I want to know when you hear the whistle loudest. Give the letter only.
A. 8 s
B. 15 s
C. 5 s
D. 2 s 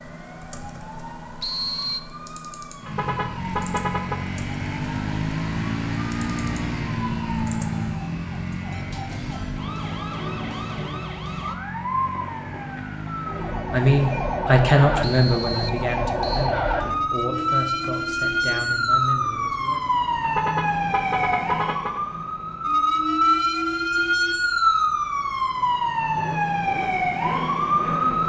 D.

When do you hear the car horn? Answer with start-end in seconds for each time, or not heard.
2.9-4.2, 20.2-22.0.